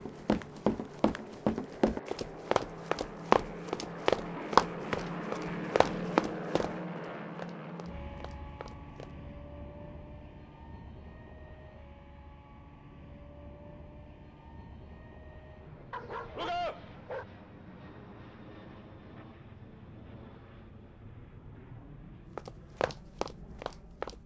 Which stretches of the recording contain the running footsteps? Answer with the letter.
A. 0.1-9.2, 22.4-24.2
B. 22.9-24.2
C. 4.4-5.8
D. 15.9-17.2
A.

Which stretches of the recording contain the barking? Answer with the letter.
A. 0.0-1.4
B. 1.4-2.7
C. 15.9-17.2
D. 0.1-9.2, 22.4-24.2
C.